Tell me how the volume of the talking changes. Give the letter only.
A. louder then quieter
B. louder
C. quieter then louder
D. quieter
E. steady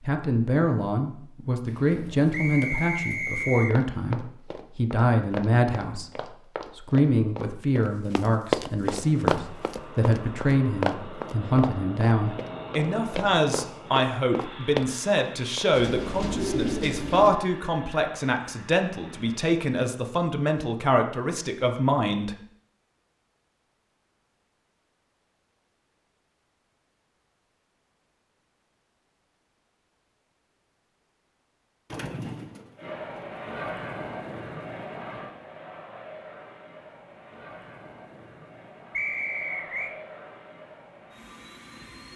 E.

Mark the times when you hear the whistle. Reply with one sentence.
You can hear the whistle from 2.3 to 3.8 s and from 38.9 to 40.0 s.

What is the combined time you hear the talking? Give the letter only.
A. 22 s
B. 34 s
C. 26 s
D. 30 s
A.